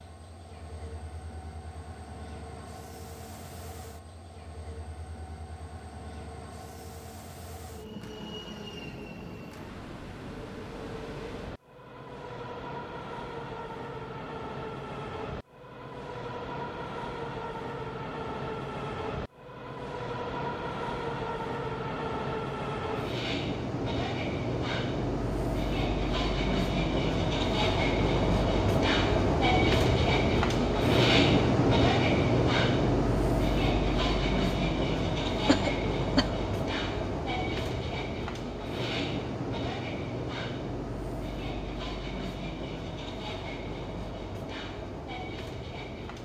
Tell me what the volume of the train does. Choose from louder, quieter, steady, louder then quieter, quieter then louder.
louder then quieter.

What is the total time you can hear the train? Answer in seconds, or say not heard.
46 s.